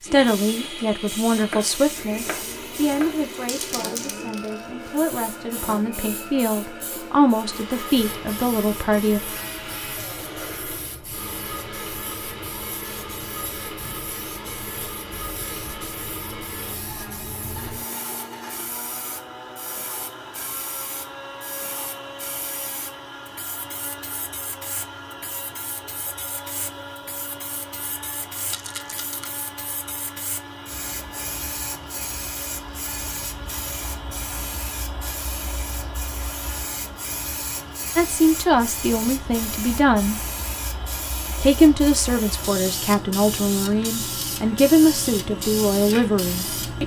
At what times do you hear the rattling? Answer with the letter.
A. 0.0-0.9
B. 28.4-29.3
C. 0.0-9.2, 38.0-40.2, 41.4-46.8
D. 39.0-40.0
B.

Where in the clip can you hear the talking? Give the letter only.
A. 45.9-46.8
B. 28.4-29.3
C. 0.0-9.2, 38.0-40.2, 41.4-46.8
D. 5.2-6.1
C.